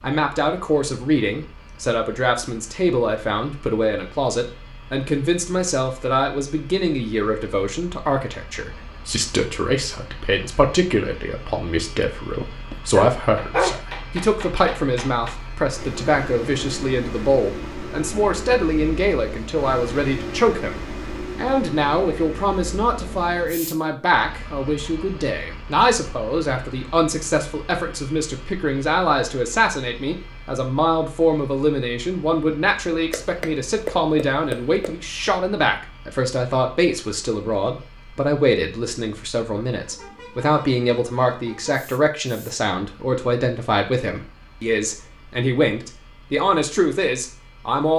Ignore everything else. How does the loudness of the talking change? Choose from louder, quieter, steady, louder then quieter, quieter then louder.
steady.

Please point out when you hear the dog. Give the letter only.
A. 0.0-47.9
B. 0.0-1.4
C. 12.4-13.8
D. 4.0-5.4
C.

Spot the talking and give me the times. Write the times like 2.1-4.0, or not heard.
0.0-47.9.